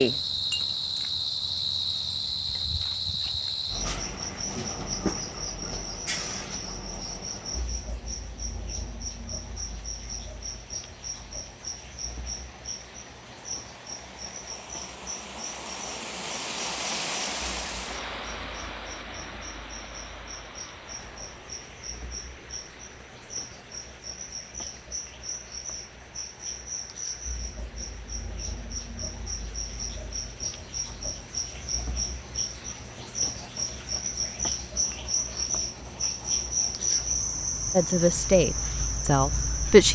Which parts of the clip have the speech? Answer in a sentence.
The speech can be heard from 37.8 to 39.9 s.